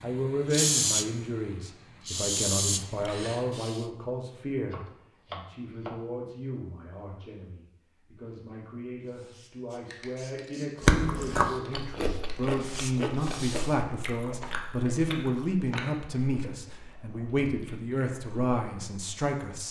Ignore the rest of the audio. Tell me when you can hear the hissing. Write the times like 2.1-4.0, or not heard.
0.0-3.9, 9.1-13.8.